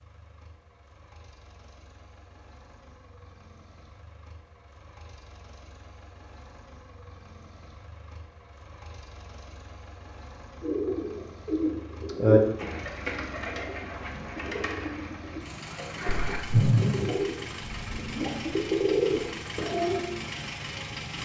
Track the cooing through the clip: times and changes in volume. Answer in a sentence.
The cooing can be heard from 10.6 to 20.1 s, getting quieter then louder.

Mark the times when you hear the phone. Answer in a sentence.
The phone can be heard from 16.1 to 17.1 s.